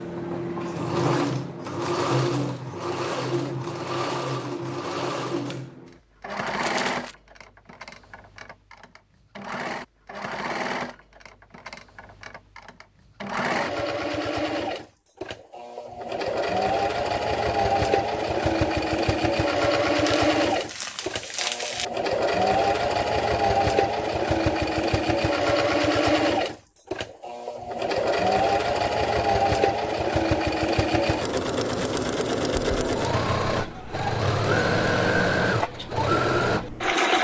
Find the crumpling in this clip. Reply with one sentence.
The crumpling can be heard from 6.5 to 7.2 s and from 20.1 to 21.9 s.